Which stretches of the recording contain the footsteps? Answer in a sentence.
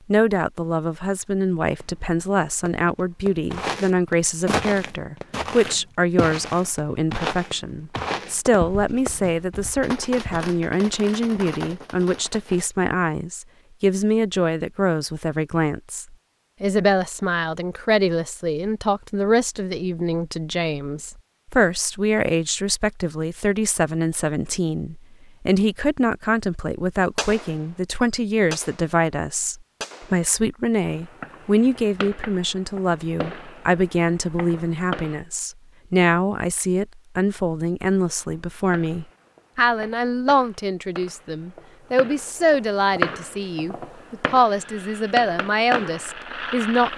The footsteps can be heard from 3.5 to 10.6 s.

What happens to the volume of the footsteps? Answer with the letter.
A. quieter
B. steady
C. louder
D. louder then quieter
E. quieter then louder
A.